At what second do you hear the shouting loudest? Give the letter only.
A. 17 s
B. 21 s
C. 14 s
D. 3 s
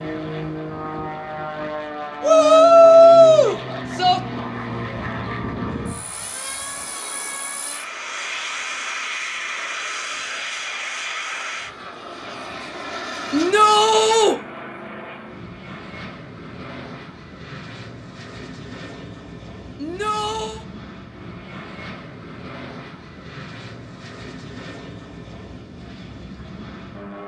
D.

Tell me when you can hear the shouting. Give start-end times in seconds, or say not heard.
2.2-4.2, 13.3-14.3, 19.8-20.6.